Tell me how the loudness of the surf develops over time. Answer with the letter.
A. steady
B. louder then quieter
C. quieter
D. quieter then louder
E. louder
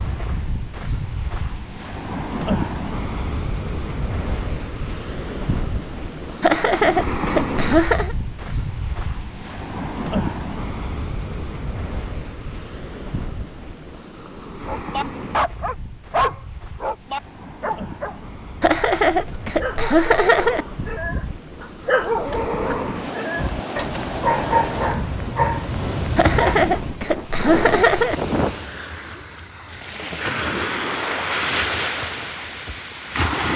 D.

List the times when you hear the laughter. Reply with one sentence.
The laughter can be heard from 6.4 to 8.2 s, from 18.6 to 20.6 s and from 26.1 to 28.1 s.